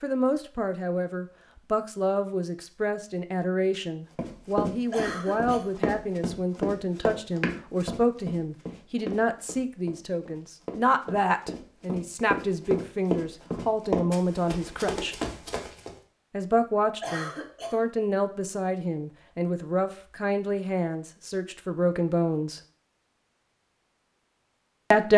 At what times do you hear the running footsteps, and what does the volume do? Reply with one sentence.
The running footsteps can be heard from 4.2 to 15.9 s, getting quieter then louder.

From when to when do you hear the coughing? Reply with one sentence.
You can hear the coughing from 4.9 to 5.8 s and from 17.0 to 17.9 s.